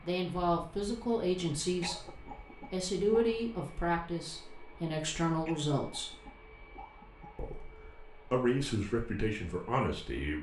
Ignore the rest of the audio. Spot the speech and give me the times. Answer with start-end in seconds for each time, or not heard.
0.0-6.1, 7.3-10.3.